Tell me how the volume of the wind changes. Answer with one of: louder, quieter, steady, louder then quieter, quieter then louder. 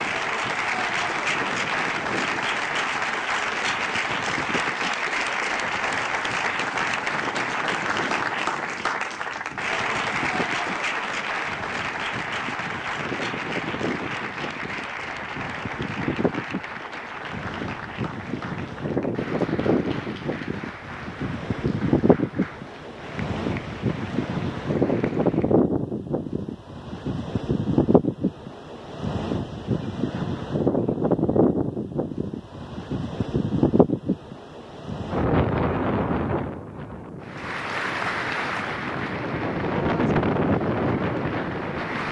louder.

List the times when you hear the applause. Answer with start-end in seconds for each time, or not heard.
0.0-25.6, 37.2-42.0.